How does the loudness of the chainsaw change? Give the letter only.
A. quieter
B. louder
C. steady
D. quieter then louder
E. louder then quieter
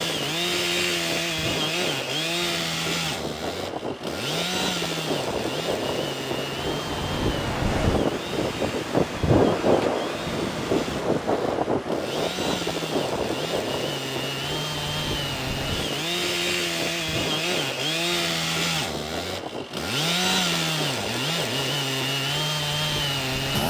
D.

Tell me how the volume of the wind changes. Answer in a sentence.
The volume of the wind goes up, then down.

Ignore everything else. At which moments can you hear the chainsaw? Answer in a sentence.
You can hear the chainsaw from 0.0 to 23.6 s.